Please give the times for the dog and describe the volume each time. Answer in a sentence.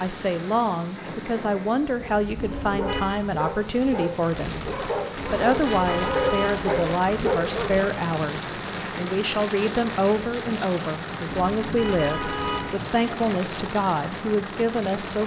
You can hear the dog from 1.9 to 7.9 s, getting louder.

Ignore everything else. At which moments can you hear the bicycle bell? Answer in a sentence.
The bicycle bell can't be heard in this clip.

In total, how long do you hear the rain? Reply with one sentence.
The rain can be heard for 15 seconds in total.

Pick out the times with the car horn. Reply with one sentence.
The car horn can be heard from 2.4 to 3.2 s, from 5.2 to 6.8 s and from 11.2 to 12.8 s.